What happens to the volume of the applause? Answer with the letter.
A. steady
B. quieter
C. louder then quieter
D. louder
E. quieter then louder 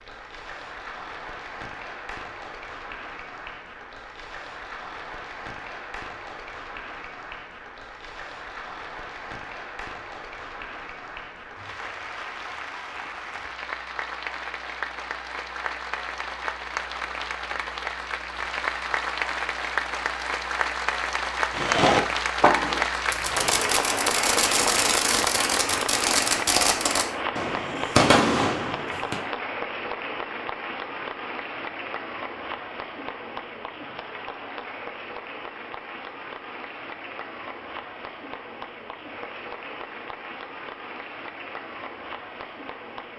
C.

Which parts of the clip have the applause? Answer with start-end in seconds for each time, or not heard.
0.0-43.1.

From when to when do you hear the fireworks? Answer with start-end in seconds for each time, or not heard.
21.5-29.2.